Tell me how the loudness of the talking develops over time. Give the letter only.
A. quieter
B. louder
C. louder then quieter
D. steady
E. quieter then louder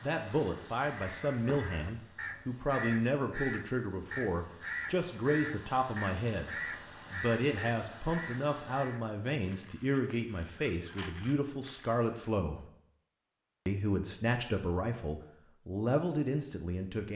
D.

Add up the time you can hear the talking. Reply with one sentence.
You can hear the talking for 16 seconds altogether.